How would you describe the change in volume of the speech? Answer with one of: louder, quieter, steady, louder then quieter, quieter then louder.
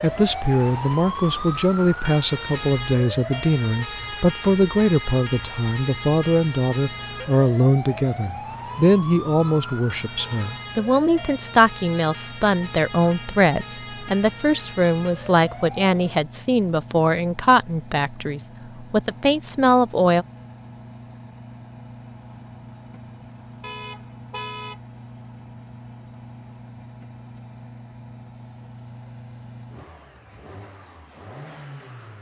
steady.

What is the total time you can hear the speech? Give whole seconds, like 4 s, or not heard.
20 s.